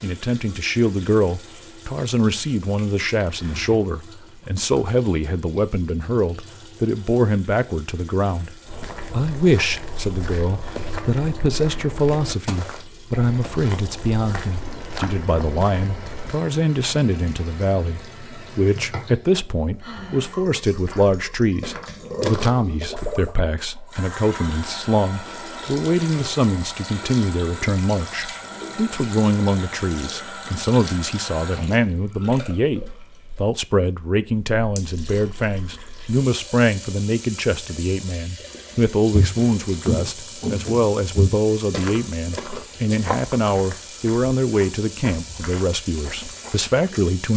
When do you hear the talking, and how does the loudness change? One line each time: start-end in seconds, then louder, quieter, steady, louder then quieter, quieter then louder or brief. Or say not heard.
0.0-47.3 steady.